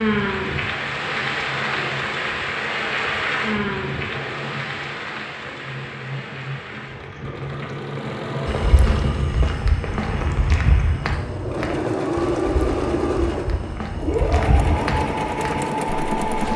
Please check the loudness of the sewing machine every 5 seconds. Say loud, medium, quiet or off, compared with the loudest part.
quiet, medium, loud, loud.